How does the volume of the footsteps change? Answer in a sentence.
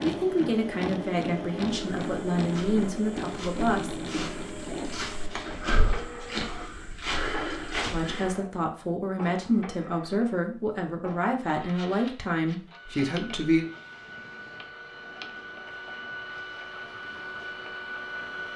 The loudness of the footsteps goes up.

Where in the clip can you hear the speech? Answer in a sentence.
The speech can be heard from 0.0 to 4.0 s and from 7.8 to 13.7 s.